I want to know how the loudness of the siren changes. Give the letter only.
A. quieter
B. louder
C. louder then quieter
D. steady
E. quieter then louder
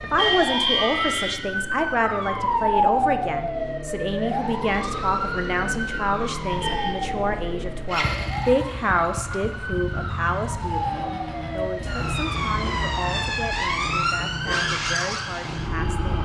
E.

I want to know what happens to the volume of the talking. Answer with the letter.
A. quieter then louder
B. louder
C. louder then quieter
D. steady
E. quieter
E.